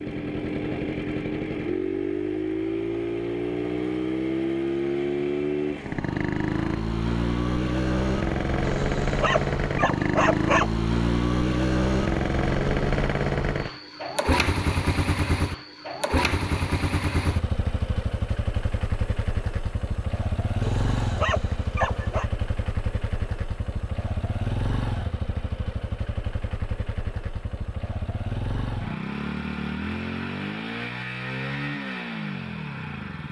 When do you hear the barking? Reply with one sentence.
You can hear the barking from 8.7 to 10.7 s and from 20.6 to 22.2 s.